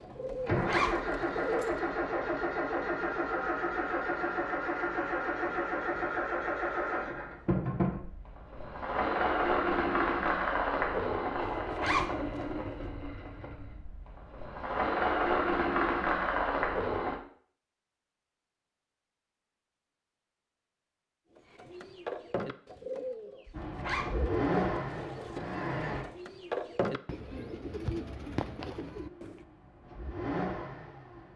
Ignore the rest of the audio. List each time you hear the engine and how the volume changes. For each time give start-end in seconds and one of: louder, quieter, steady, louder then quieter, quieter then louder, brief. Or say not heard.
0.0-17.2 steady
23.5-26.1 brief
28.9-31.3 brief.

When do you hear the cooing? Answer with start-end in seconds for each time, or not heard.
0.0-1.9, 21.4-29.4.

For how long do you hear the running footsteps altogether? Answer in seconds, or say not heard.
not heard.